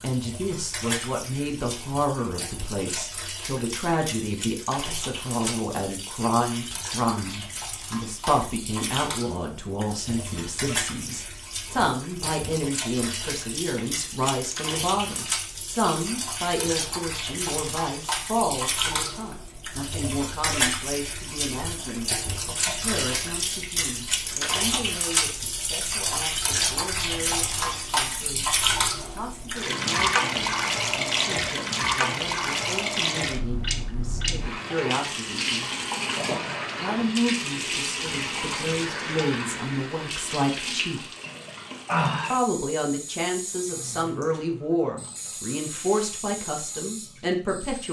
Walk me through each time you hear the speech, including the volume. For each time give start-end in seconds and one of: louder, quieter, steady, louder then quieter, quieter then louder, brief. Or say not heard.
0.0-35.7 quieter
36.8-41.0 quieter then louder
42.3-47.8 steady.